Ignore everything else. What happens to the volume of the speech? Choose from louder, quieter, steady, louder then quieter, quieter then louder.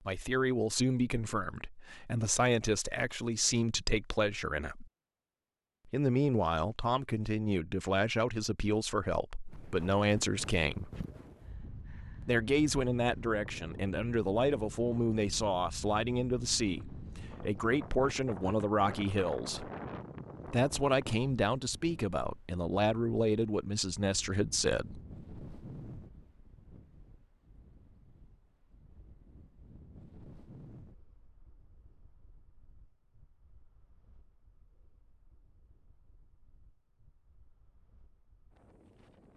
steady.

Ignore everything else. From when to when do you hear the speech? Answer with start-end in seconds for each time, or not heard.
0.1-4.8, 5.8-10.9, 12.2-19.7, 20.4-25.0.